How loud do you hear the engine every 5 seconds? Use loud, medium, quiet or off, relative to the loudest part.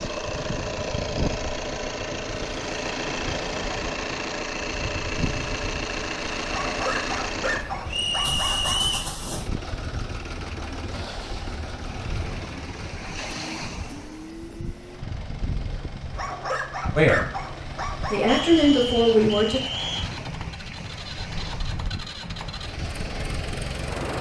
loud, loud, medium, medium, medium.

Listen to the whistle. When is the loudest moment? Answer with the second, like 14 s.
9 s.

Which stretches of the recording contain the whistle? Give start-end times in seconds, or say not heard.
7.8-9.1, 18.2-20.1.